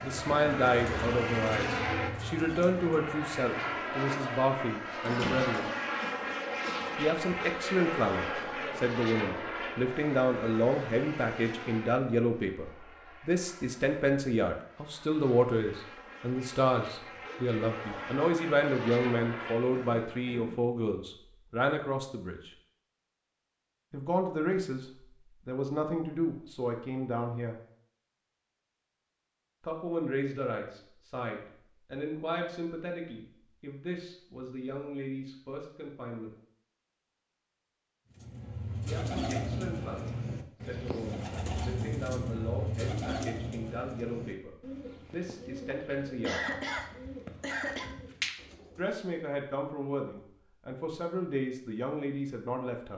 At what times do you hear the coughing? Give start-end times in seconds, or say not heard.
5.0-7.0, 19.7-20.6, 45.7-47.9.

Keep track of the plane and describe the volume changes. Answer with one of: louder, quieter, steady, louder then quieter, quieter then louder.
quieter then louder.